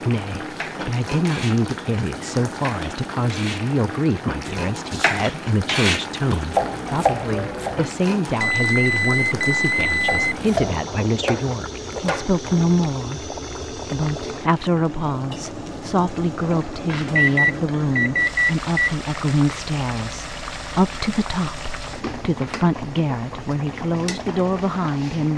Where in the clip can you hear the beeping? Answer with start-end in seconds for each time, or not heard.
8.4-10.3, 17.1-18.9.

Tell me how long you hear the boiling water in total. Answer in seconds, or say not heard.
25 s.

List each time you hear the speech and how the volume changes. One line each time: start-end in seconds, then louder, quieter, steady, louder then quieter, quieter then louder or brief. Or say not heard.
0.1-25.3 steady.